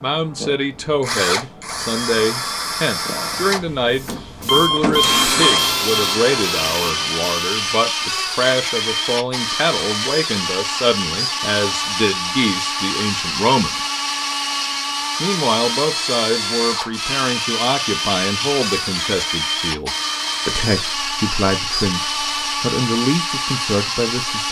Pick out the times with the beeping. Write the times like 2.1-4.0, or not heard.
4.5-6.0.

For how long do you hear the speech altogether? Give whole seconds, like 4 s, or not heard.
23 s.